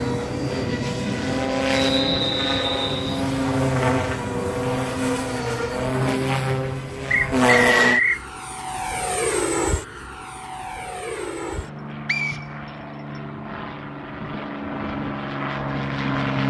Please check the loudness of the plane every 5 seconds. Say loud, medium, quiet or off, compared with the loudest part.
loud, loud, medium, loud.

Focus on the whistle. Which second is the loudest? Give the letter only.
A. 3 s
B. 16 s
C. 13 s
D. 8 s
D.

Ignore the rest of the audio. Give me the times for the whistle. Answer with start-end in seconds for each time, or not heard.
1.7-3.2, 7.1-8.2, 12.1-13.2.